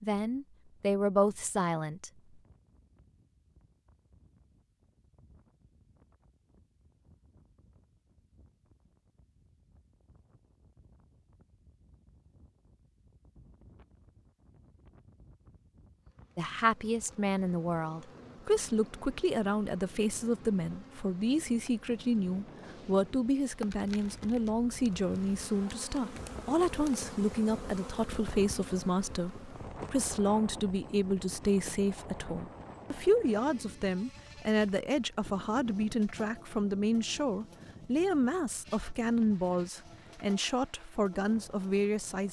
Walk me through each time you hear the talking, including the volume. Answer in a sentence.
You can hear the talking briefly from 0.0 to 2.1 s; and from 16.4 to 42.2 s, at a steady volume.